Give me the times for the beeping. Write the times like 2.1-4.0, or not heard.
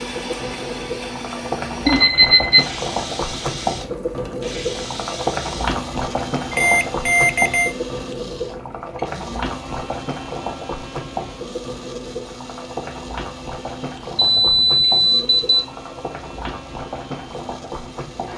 1.9-2.6, 6.5-7.8, 14.2-15.7.